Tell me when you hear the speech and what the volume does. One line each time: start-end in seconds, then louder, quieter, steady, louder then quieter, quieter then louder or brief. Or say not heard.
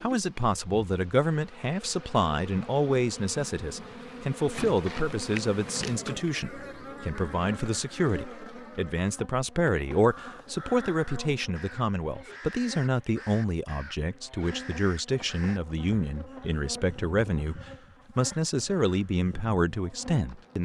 0.0-20.5 steady.